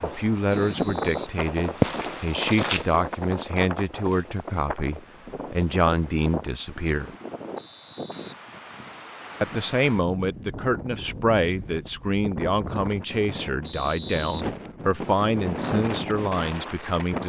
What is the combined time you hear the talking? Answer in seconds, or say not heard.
15 s.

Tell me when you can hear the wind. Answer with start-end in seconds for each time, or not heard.
0.0-17.2.